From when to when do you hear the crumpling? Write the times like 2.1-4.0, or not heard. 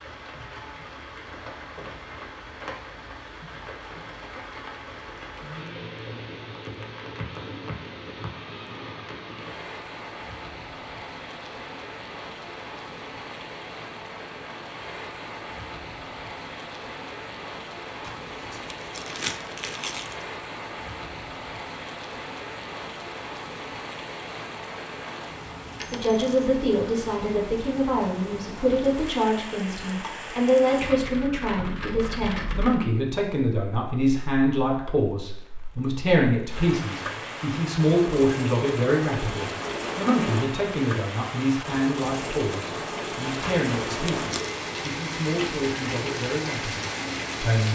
18.0-20.2, 43.4-44.5.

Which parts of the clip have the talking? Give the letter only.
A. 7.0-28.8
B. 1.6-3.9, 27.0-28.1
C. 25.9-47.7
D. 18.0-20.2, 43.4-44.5
C.